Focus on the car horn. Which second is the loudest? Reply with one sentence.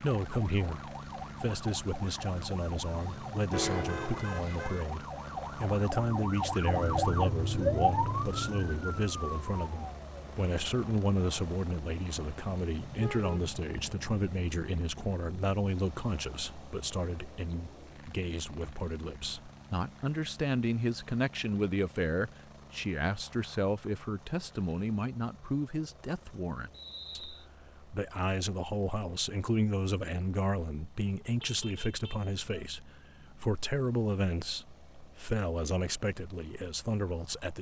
The volume of the car horn peaks at 4 seconds.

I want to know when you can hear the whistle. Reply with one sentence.
The whistle can be heard from 26.7 to 27.4 s.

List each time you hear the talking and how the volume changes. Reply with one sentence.
The talking can be heard from 0.0 to 37.5 s, at a steady volume.